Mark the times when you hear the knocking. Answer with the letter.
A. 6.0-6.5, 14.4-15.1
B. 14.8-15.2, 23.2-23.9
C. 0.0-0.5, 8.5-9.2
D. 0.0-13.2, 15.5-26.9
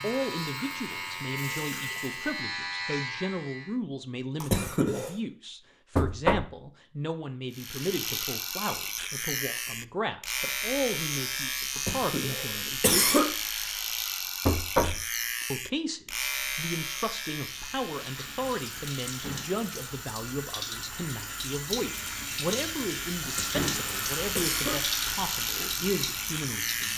A.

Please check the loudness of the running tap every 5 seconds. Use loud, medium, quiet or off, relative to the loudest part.
medium, off, off, medium, loud, loud.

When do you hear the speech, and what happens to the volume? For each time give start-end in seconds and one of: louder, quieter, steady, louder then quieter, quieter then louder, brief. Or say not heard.
0.0-13.2 steady
15.5-26.9 steady.